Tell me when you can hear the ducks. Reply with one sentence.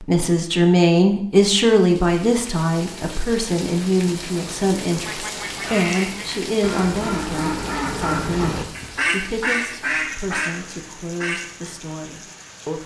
You can hear the ducks from 5.0 to 11.5 s.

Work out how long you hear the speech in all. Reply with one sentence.
The speech can be heard for 13 seconds in total.